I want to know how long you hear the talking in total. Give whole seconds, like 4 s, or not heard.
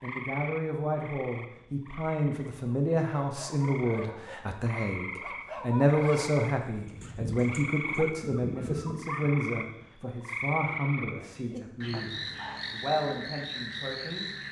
14 s.